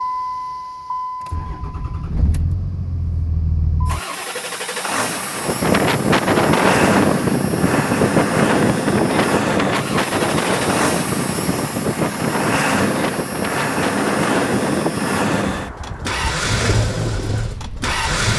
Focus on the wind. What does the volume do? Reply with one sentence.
The loudness of the wind goes down.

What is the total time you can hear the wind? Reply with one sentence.
You can hear the wind for 13 seconds altogether.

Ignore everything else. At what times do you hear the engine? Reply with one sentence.
You can hear the engine from 0.0 to 18.3 s.